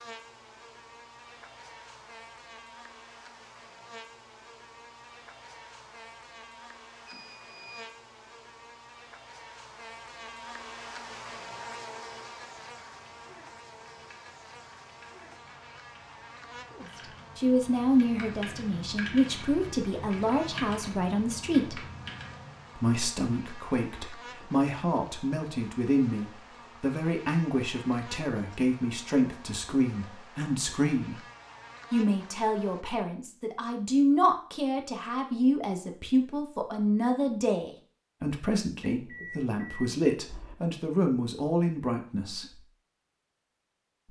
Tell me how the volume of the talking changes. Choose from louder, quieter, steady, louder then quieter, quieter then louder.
steady.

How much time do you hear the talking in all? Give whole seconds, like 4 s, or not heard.
24 s.